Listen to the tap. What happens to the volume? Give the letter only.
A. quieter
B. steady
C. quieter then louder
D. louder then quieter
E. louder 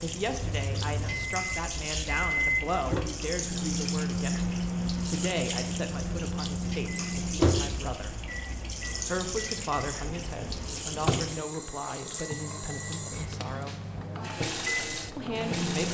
B.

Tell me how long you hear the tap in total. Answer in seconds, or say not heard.
16 s.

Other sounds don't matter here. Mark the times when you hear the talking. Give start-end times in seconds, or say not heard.
0.0-8.2, 9.1-13.8, 15.2-15.9.